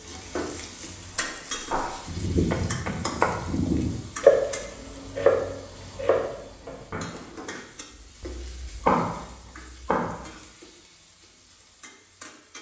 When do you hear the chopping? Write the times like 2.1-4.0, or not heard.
1.1-10.3.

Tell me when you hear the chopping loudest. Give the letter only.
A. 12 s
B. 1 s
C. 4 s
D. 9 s
C.